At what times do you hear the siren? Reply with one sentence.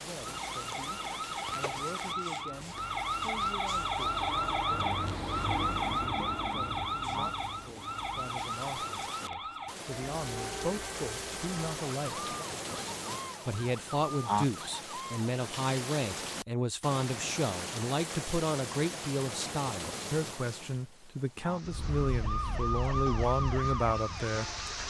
You can hear the siren from 0.2 to 15.2 s and from 21.6 to 24.8 s.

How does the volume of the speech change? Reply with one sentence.
The volume of the speech goes up.